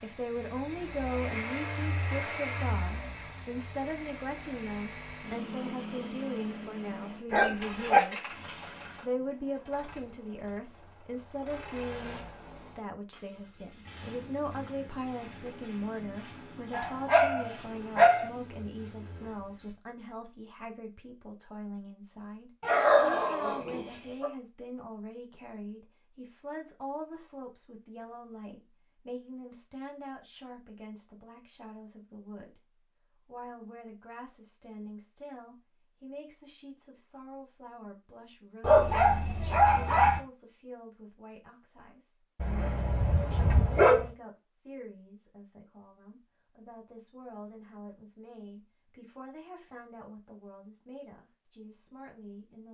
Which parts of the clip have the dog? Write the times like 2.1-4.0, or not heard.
7.3-8.0, 16.7-18.3, 22.6-24.3, 38.6-40.2, 42.4-44.1.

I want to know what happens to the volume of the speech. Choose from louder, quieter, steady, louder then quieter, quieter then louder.
quieter.